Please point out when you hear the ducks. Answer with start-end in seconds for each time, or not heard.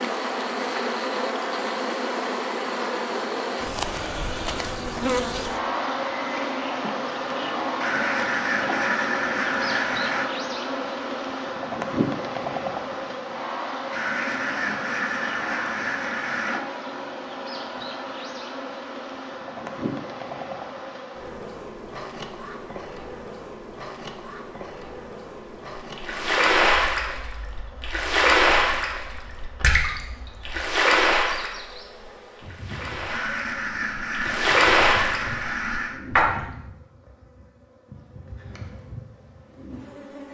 7.8-10.3, 13.9-16.6, 33.1-36.0.